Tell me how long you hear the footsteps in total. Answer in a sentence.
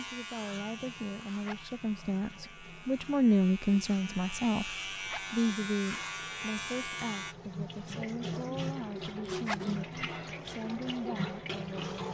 You can't hear the footsteps here.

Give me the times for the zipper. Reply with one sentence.
You can hear the zipper from 1.2 to 1.8 s, from 4.9 to 5.3 s and from 9.2 to 9.8 s.